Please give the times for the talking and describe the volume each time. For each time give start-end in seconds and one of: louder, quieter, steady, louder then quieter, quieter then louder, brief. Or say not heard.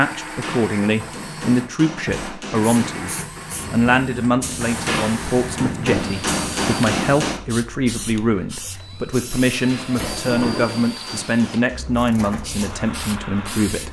0.0-13.8 steady.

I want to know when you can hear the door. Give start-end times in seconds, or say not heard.
9.9-10.8.